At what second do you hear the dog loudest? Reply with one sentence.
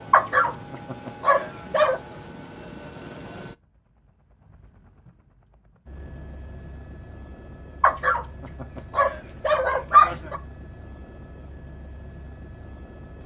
The volume of the dog peaks at 10 seconds.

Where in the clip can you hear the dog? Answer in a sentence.
The dog can be heard from 0.1 to 2.0 s and from 7.8 to 10.4 s.